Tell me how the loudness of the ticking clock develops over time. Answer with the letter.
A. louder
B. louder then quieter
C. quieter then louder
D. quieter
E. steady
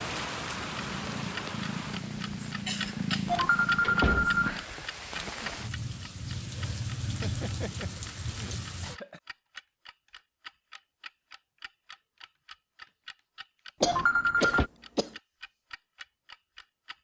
D.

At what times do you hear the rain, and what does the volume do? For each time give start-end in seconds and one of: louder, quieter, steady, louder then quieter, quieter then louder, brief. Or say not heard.
0.0-9.0 quieter then louder.